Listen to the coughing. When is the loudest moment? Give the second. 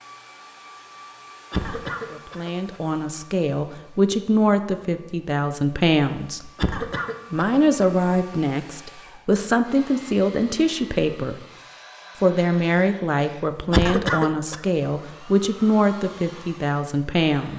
14 s.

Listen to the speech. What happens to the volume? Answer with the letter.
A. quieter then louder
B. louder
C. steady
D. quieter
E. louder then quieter
C.